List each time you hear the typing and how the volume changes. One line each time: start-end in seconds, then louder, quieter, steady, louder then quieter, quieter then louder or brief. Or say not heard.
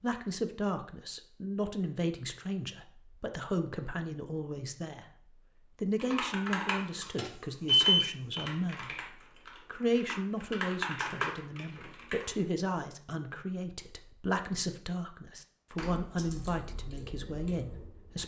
6.0-12.3 quieter then louder
15.8-18.2 brief.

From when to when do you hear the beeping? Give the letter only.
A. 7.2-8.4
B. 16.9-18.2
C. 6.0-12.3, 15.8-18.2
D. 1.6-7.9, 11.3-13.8
A.